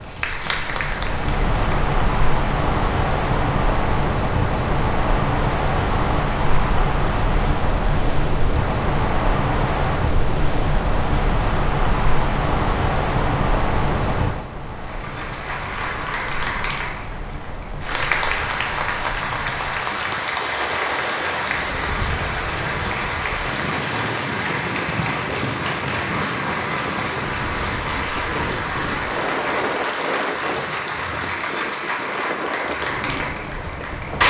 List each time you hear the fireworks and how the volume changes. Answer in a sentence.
You can't hear the fireworks here.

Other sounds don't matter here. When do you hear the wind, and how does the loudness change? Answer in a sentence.
You can hear the wind from 0.0 to 34.2 s, getting quieter.